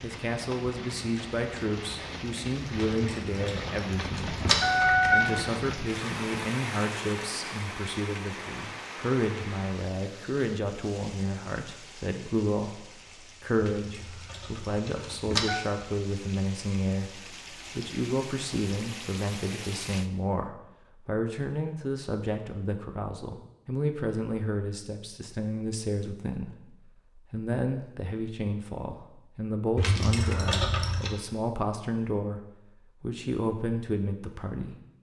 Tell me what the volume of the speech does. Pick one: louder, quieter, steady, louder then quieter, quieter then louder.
steady.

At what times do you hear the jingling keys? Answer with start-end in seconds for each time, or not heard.
2.9-5.3, 13.6-15.7, 29.8-31.2.